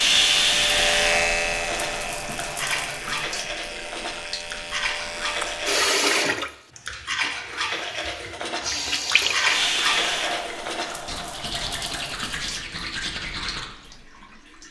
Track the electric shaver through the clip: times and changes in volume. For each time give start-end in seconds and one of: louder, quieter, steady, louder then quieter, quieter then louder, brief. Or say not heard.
0.0-5.8 quieter.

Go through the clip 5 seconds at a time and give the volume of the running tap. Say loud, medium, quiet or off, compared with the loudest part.
loud, loud, medium.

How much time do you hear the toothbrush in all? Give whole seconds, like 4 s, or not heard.
12 s.